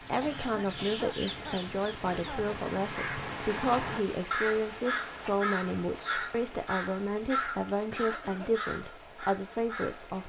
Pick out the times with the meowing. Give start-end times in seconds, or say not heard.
not heard.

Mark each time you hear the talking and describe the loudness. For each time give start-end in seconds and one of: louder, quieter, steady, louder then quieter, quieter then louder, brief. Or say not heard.
0.0-10.2 steady.